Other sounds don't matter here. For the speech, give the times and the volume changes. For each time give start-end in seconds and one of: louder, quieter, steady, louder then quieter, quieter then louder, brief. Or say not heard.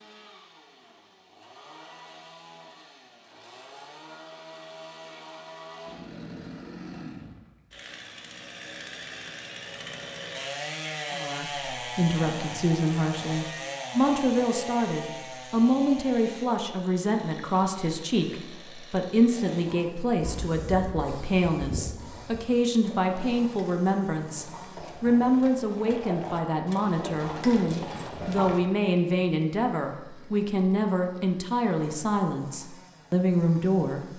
11.2-34.1 steady.